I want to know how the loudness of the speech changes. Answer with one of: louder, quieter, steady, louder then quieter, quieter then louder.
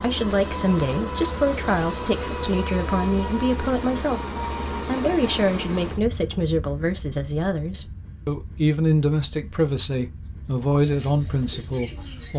steady.